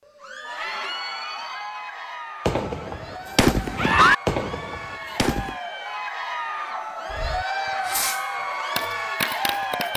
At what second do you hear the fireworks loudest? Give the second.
4 s.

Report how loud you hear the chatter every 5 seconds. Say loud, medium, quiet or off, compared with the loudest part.
medium, loud.